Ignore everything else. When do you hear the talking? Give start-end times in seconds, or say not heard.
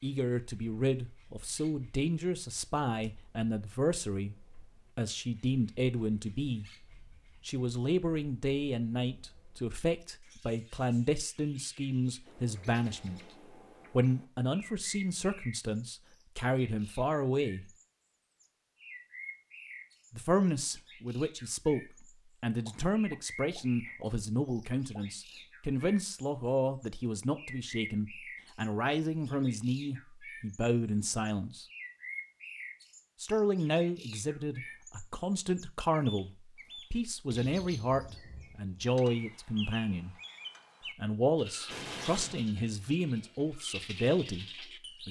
0.0-6.7, 7.5-13.2, 13.9-17.7, 20.1-31.6, 33.2-40.1, 41.0-45.0.